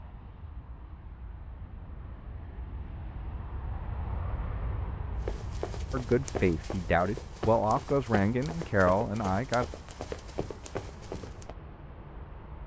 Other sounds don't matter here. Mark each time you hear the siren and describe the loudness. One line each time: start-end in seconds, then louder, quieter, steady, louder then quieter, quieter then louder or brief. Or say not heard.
not heard.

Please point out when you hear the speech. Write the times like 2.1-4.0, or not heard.
5.9-9.7.